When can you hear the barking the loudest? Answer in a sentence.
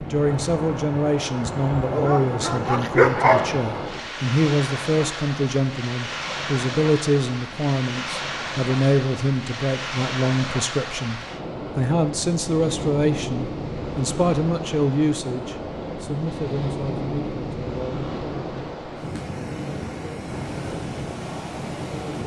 The loudest moment of the barking is at 3 seconds.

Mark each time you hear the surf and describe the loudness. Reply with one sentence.
The surf can be heard from 0.0 to 22.2 s, at a steady volume.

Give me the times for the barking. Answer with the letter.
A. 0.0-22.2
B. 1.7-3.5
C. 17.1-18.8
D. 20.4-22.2
B.